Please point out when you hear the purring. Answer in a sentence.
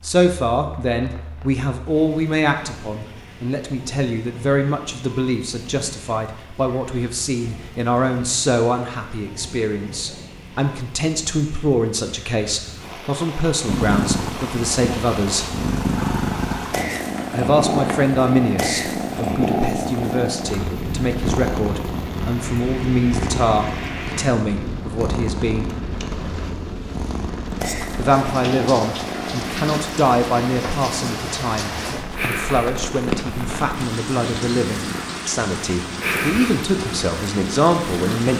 The purring can be heard from 13.7 to 38.3 s.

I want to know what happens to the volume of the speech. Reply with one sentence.
The volume of the speech stays about the same.